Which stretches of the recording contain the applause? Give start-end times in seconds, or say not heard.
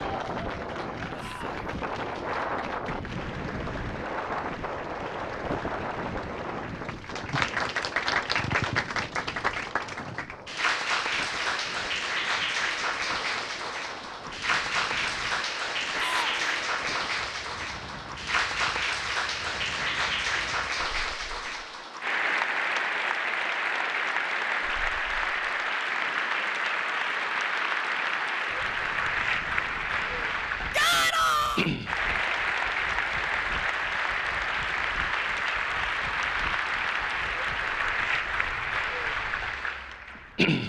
0.0-40.6.